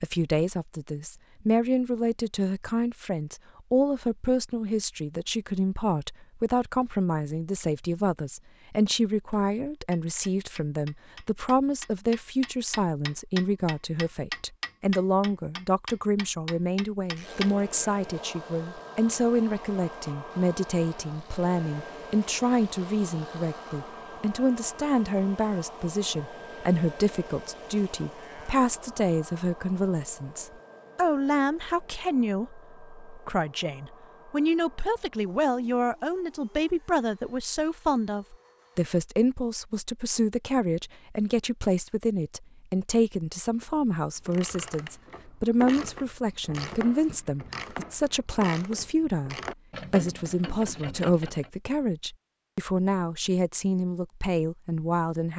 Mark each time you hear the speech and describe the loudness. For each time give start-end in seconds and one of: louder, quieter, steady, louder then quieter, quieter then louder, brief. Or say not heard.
0.0-55.3 steady.